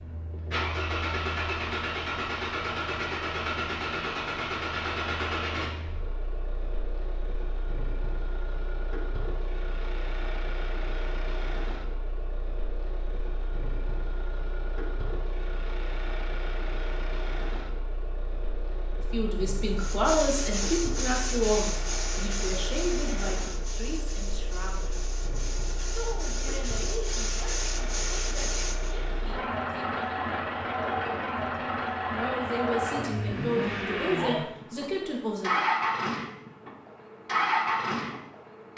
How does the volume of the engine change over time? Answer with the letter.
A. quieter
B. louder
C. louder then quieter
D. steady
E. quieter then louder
E.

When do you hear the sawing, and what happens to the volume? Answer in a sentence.
The sawing can be heard from 19.8 to 28.9 s, getting quieter then louder.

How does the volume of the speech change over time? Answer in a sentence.
The volume of the speech goes down, then up.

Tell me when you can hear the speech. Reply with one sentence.
You can hear the speech from 19.1 to 25.1 s, from 25.9 to 30.4 s and from 32.1 to 35.6 s.